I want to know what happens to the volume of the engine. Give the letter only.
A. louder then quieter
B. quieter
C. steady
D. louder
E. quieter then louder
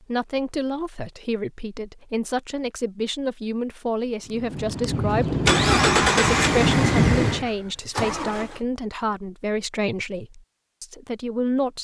A.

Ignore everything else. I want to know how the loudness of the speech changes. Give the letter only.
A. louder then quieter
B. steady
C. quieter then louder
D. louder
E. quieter
B.